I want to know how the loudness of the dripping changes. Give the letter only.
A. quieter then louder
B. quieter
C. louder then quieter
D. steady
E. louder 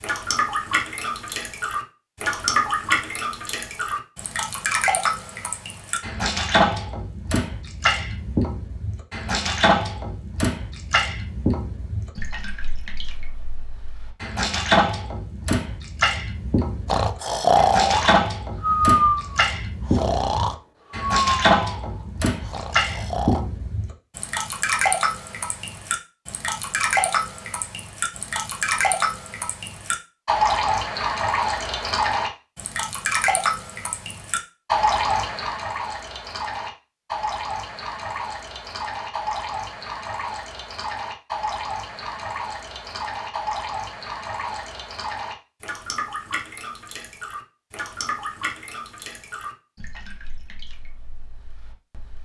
B.